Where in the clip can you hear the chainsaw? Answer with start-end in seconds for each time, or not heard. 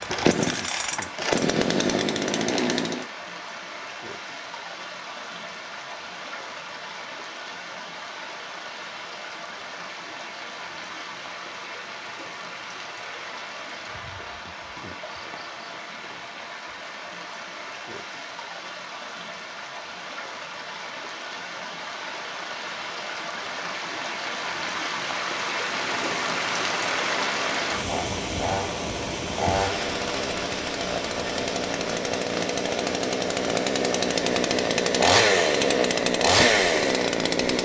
0.0-3.0, 25.6-37.6.